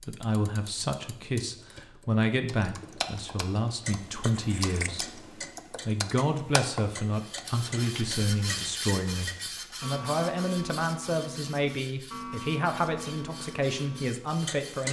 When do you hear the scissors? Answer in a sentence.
The scissors can be heard from 4.3 to 4.9 s.